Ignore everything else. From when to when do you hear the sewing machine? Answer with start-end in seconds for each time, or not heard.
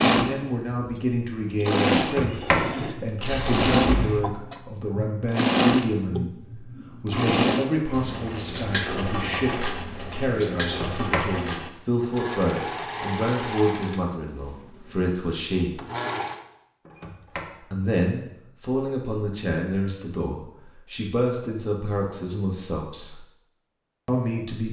0.0-16.4.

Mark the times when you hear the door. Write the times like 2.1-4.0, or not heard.
1.9-4.3, 10.6-11.3, 16.9-17.6.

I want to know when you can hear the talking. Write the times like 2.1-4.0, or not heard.
0.1-15.8, 17.6-23.2, 24.1-24.6.